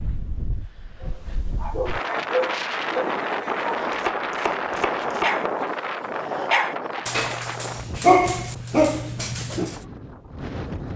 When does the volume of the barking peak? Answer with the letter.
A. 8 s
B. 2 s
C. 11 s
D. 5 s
A.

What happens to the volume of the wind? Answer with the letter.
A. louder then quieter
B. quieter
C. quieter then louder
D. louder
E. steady
A.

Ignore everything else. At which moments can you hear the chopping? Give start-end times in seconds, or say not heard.
3.8-5.3.